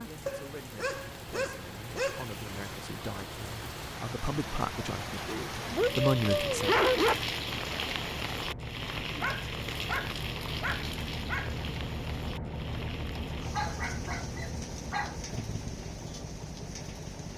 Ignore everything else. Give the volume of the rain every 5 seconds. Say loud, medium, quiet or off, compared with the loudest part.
medium, loud, medium, quiet.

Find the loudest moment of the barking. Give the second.
7 s.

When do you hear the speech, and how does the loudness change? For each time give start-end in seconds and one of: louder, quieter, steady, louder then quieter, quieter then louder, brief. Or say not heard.
0.0-6.8 louder.